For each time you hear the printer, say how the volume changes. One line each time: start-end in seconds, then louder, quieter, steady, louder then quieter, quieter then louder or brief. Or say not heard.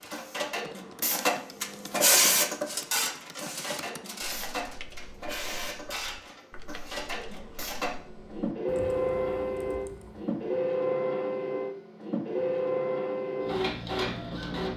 0.0-14.7 quieter then louder.